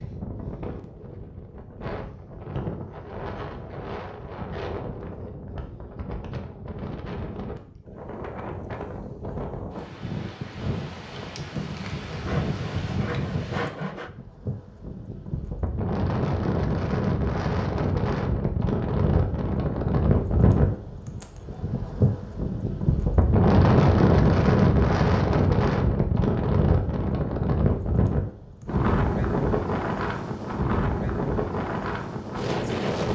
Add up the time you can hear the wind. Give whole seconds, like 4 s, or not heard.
33 s.